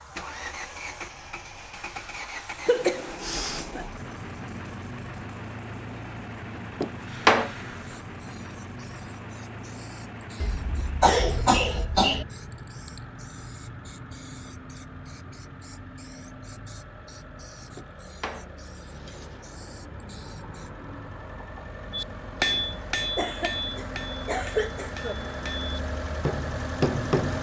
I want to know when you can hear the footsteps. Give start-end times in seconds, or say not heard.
not heard.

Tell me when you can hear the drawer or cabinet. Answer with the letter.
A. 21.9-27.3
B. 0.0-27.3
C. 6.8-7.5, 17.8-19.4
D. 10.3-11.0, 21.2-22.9
C.